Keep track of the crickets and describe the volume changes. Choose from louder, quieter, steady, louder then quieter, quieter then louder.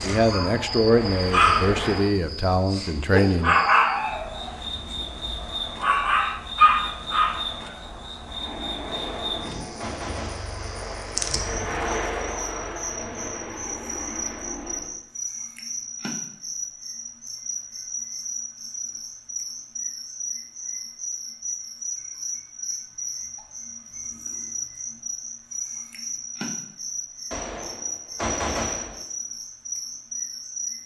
steady.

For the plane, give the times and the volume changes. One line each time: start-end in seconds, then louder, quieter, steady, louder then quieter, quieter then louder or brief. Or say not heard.
0.0-2.1 brief
8.2-14.9 louder then quieter.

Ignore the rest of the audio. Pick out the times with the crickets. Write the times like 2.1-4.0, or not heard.
0.0-30.8.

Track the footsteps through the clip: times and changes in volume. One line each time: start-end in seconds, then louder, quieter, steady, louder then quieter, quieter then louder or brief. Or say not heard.
not heard.